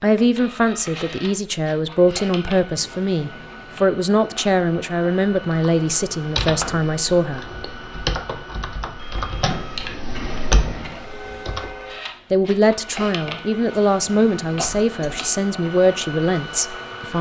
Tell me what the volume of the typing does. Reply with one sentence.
The volume of the typing goes down, then up.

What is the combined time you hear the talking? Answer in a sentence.
You can hear the talking for 12 seconds altogether.